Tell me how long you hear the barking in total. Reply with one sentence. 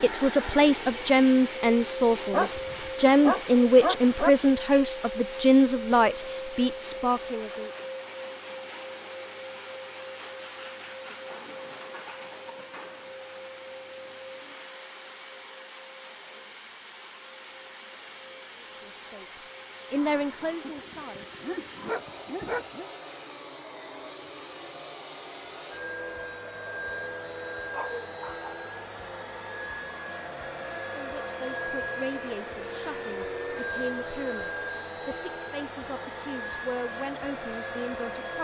The barking can be heard for 5 seconds in total.